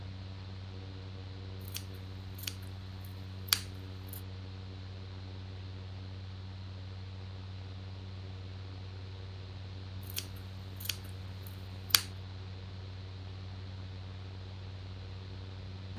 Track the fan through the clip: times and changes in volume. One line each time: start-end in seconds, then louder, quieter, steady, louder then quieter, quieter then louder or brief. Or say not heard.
0.0-15.9 steady.